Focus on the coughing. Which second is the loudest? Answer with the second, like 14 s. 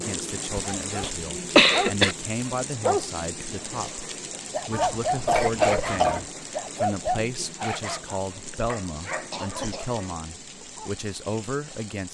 2 s.